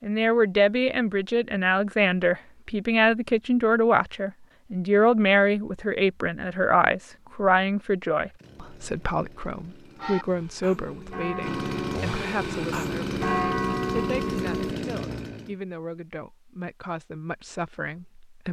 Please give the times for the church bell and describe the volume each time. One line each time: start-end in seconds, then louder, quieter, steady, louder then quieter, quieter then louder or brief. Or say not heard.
9.9-14.8 louder.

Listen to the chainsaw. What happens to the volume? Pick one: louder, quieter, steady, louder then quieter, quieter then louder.
louder.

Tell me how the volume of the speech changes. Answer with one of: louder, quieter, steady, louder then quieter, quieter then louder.
quieter.